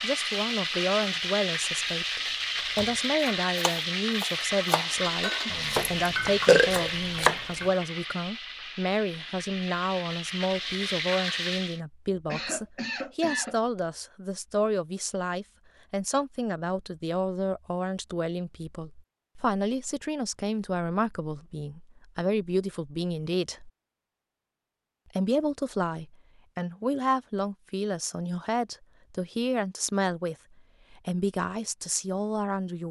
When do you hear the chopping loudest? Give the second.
7 s.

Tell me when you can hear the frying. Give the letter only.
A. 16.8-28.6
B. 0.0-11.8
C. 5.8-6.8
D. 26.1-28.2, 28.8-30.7
B.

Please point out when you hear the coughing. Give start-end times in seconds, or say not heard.
12.2-13.6.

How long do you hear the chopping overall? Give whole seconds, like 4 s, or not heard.
4 s.